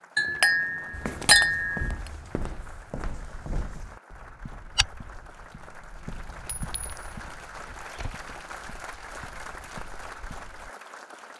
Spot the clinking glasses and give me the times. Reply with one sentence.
You can hear the clinking glasses from 0.1 to 1.9 s and from 6.6 to 7.2 s.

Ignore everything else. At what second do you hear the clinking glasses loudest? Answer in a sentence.
The volume of the clinking glasses peaks at 1 second.